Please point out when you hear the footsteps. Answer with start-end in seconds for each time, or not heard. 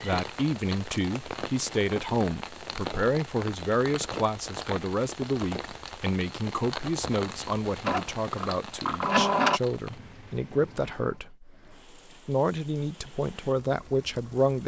not heard.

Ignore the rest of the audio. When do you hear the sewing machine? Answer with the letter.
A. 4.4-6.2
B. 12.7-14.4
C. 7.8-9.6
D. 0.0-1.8
C.